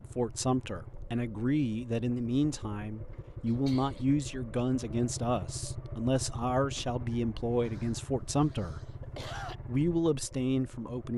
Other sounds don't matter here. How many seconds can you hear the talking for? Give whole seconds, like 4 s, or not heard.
10 s.